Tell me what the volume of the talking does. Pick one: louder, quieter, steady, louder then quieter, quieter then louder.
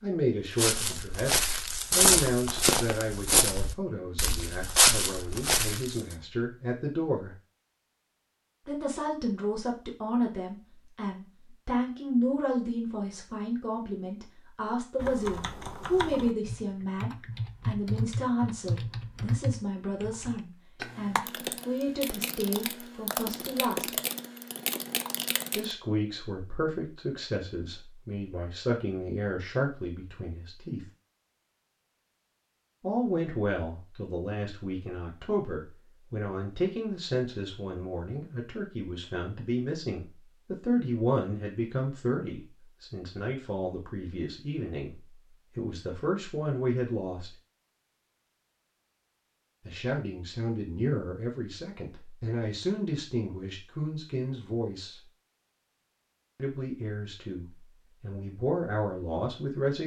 steady.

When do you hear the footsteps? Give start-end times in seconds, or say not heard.
0.6-6.0.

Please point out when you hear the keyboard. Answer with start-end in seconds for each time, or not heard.
14.9-25.8.